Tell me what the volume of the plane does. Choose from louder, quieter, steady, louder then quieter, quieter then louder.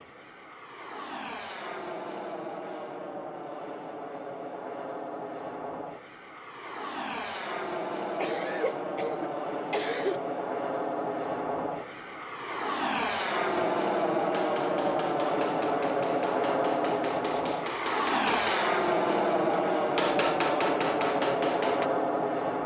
louder.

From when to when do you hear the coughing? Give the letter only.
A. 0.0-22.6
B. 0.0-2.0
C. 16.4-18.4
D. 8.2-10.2
D.